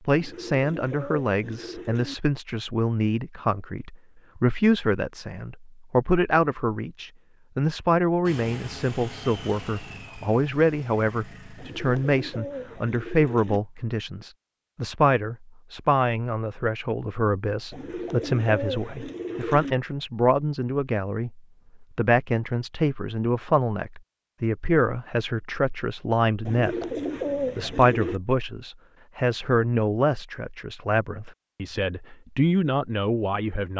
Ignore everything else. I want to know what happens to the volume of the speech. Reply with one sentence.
The loudness of the speech stays about the same.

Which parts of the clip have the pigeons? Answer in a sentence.
The pigeons can be heard from 0.1 to 2.1 s, from 11.6 to 13.6 s, from 17.7 to 19.8 s and from 26.4 to 28.2 s.